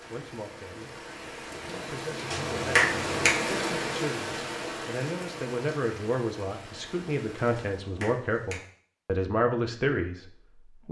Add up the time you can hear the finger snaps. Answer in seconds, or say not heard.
2 s.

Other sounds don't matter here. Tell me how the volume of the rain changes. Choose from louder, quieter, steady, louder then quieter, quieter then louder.
louder then quieter.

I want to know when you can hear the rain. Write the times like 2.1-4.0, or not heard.
0.0-7.8.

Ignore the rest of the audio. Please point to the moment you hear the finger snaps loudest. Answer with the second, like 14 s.
3 s.